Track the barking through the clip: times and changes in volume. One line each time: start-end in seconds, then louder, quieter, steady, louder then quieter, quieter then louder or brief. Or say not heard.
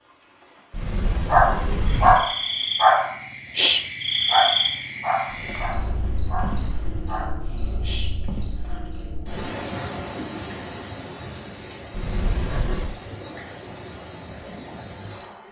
1.3-8.9 quieter.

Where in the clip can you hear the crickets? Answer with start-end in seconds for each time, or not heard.
0.0-15.4.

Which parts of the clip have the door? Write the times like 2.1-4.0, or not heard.
0.7-2.2, 5.4-7.2, 11.9-12.9.